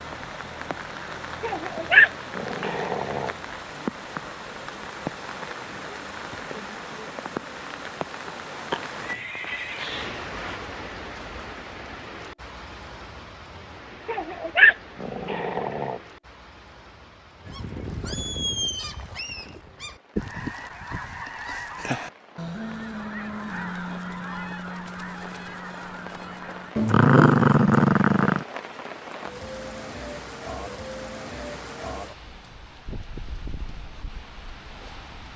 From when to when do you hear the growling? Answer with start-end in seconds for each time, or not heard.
1.4-3.4, 14.1-16.0, 26.8-28.4.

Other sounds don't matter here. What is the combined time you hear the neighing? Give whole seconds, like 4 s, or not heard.
2 s.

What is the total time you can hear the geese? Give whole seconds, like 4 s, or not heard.
9 s.